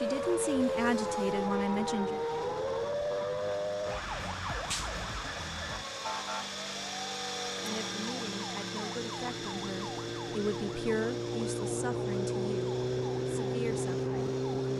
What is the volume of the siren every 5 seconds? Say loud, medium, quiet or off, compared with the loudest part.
loud, medium, loud.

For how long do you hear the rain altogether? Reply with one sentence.
You can't hear the rain here.